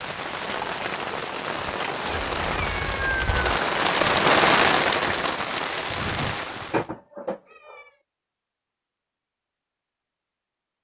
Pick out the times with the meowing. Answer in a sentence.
You can hear the meowing from 2.1 to 3.6 s and from 6.7 to 7.9 s.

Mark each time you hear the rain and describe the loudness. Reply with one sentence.
You can hear the rain from 0.0 to 6.8 s, getting louder then quieter.